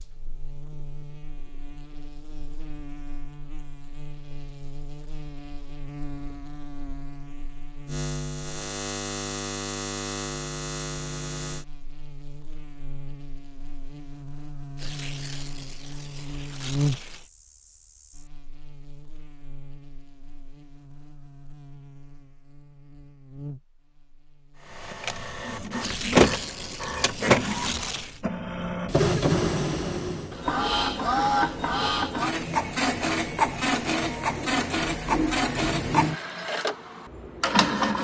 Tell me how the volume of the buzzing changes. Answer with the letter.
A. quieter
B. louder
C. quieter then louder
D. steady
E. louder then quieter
E.